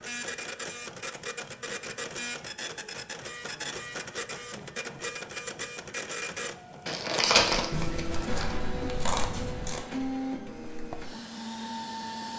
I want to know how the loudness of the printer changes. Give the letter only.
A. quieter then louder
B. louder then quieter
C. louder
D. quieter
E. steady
E.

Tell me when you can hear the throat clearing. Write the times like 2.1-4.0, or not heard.
not heard.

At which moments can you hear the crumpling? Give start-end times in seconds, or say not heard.
6.8-8.6.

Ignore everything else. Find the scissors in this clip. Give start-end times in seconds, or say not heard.
7.7-9.8.